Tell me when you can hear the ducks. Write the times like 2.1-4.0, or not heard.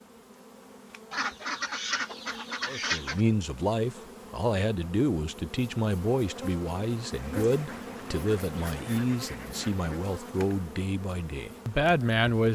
1.1-3.2, 7.1-9.9.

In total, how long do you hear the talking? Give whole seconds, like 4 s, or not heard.
10 s.